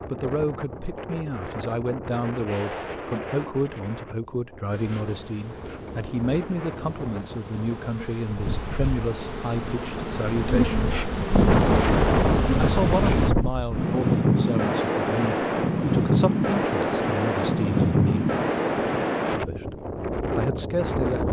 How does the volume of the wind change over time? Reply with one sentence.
The loudness of the wind goes up.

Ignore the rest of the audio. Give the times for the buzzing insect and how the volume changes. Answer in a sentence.
The buzzing insect can be heard from 4.7 to 13.3 s, getting louder.